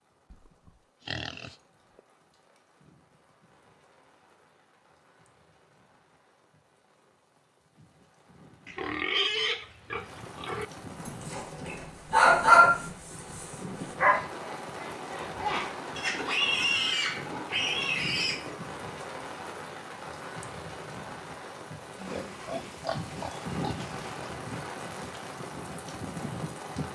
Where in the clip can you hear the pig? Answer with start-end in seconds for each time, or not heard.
0.3-1.6, 8.7-10.7, 15.9-18.6, 21.9-24.1.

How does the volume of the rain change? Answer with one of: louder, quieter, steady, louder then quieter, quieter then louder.
louder.